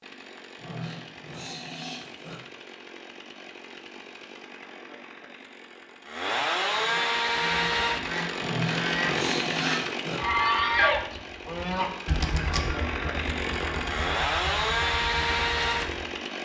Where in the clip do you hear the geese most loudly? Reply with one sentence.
The loudest moment of the geese is at 11 seconds.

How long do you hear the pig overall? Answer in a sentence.
You can hear the pig for 4 seconds altogether.